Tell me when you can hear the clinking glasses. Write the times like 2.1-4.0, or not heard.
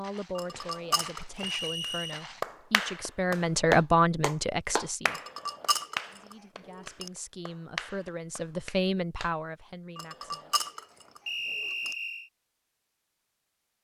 0.3-1.6, 5.1-7.1, 9.9-11.9.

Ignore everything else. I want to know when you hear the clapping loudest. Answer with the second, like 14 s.
4 s.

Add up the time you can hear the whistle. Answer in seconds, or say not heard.
2 s.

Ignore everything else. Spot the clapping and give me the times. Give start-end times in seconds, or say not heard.
1.8-9.3.